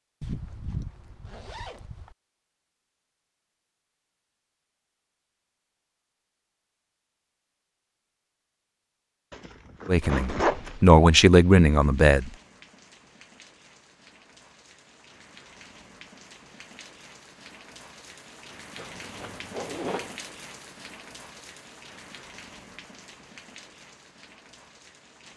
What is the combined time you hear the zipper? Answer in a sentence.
You can hear the zipper for 5 seconds altogether.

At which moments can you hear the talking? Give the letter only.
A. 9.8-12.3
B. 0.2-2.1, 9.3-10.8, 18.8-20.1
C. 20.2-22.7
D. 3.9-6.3
A.